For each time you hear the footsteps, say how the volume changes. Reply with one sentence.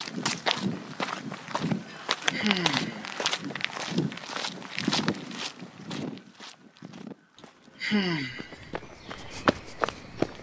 You can hear the footsteps from 0.0 to 10.3 s, getting quieter then louder.